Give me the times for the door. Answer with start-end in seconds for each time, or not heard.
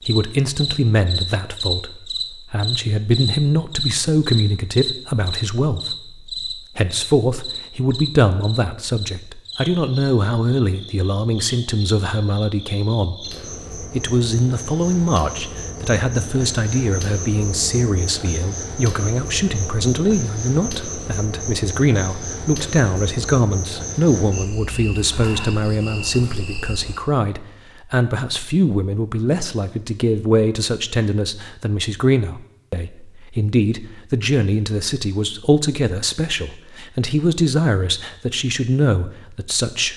not heard.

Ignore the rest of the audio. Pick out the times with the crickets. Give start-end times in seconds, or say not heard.
0.0-27.0.